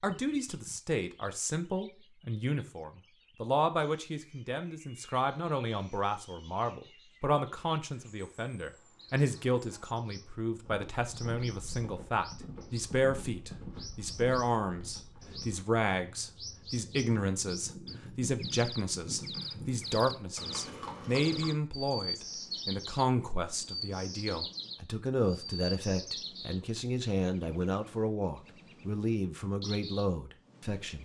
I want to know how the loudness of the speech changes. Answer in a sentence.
The loudness of the speech stays about the same.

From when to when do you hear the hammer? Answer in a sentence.
You can't hear the hammer here.